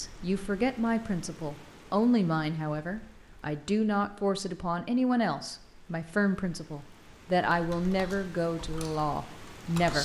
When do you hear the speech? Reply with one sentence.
The speech can be heard from 0.0 to 10.0 s.